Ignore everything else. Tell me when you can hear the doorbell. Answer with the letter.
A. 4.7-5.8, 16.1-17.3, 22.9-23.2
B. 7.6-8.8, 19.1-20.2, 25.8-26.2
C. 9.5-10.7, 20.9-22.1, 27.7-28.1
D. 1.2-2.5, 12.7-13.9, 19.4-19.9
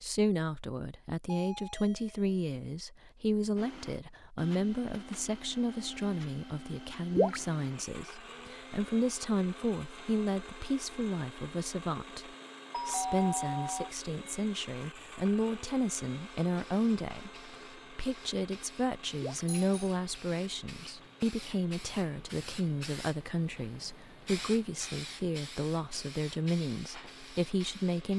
D.